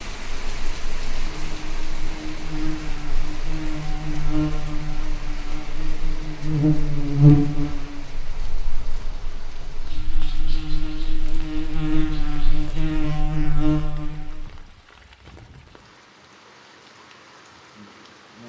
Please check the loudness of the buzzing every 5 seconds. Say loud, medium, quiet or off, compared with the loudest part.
medium, loud, medium, off.